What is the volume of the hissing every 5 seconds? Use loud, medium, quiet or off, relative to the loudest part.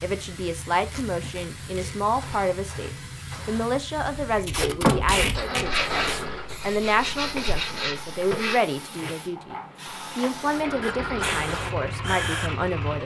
loud, medium, loud.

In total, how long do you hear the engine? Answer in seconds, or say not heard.
5 s.